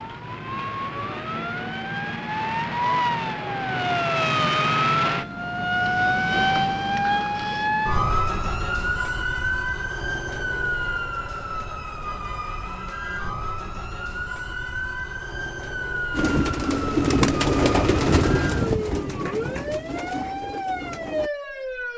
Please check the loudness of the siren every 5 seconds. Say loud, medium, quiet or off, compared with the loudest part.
loud, loud, medium, medium, medium.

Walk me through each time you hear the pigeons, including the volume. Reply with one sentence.
The pigeons can be heard from 16.1 to 21.3 s, getting quieter.